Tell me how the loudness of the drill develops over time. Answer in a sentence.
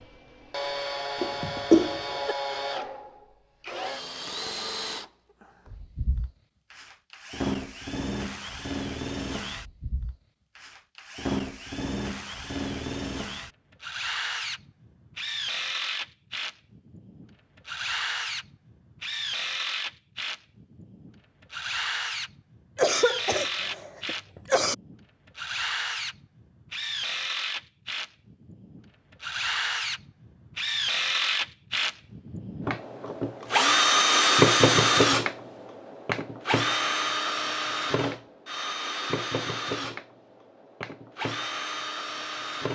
The loudness of the drill goes up.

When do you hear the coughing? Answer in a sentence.
The coughing can be heard from 1.2 to 2.4 s and from 22.8 to 24.8 s.